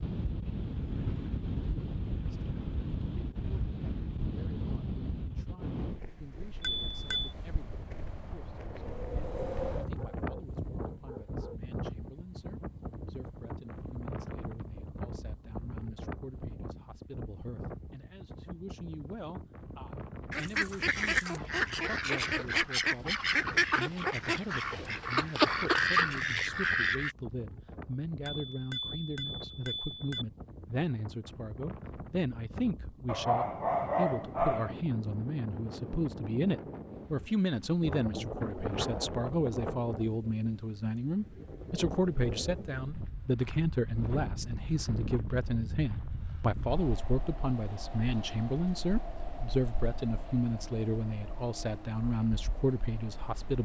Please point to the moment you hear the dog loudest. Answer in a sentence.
The loudest moment of the dog is at 34 seconds.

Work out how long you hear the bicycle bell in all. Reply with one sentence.
You can hear the bicycle bell for 3 seconds altogether.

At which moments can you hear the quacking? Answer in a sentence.
The quacking can be heard from 20.3 to 27.1 s.